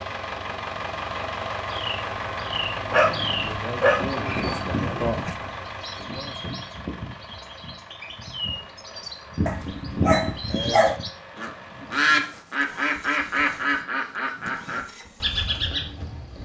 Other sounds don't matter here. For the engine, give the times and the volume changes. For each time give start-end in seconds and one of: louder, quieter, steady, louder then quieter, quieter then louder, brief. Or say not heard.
0.0-16.3 quieter.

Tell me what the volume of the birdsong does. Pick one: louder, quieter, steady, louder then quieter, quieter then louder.
louder.